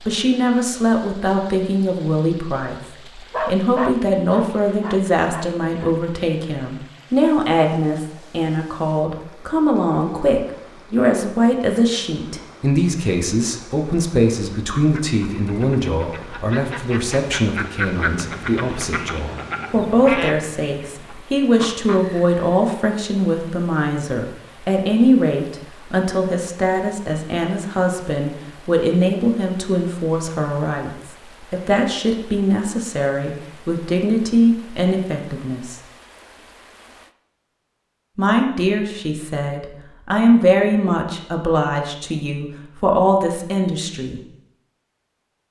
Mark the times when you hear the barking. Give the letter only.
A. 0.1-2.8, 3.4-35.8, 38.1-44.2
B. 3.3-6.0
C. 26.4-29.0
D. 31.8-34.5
B.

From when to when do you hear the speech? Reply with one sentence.
You can hear the speech from 0.1 to 2.8 s, from 3.4 to 35.8 s and from 38.1 to 44.2 s.